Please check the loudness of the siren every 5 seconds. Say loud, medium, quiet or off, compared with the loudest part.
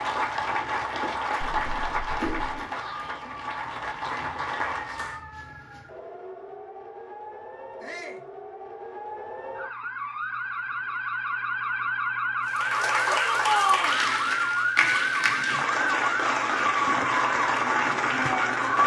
quiet, quiet, loud, loud.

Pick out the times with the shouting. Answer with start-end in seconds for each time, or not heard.
2.7-3.2, 7.8-8.2, 13.1-13.9.